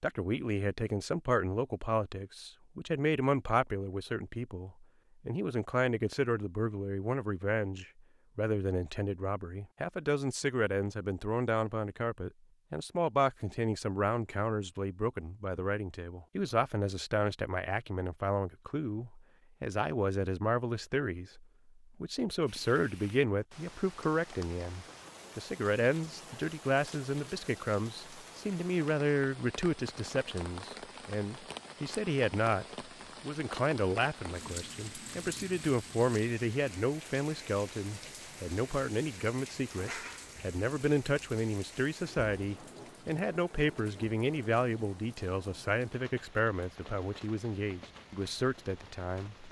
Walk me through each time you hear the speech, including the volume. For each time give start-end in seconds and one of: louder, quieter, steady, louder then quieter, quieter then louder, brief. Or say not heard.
0.0-49.4 steady.